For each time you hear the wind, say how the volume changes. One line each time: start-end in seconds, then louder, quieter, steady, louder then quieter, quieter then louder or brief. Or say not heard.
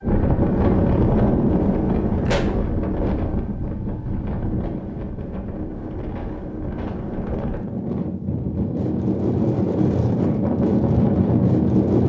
0.0-12.0 quieter then louder.